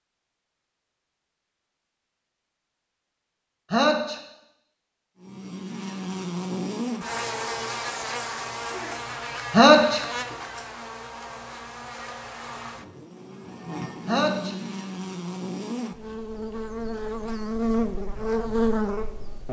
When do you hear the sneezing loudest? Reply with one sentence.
The volume of the sneezing peaks at 10 seconds.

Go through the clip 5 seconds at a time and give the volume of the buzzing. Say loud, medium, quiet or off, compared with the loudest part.
off, loud, medium, loud.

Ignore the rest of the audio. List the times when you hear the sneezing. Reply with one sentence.
You can hear the sneezing from 3.7 to 4.2 s, from 9.5 to 10.1 s and from 14.1 to 14.6 s.